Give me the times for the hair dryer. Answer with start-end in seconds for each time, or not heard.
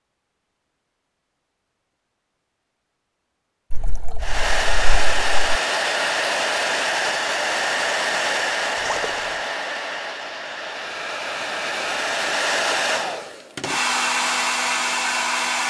4.2-15.6.